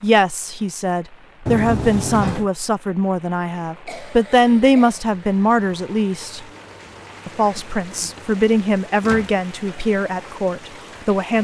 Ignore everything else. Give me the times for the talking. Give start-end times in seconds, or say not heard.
0.0-6.5, 7.2-11.4.